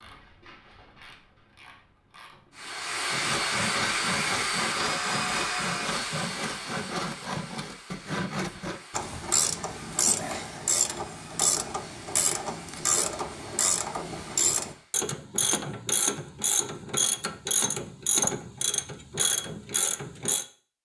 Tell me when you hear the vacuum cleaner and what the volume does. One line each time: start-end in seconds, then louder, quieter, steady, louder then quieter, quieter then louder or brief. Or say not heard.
2.5-15.0 quieter.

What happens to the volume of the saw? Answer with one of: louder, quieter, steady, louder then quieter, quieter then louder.
steady.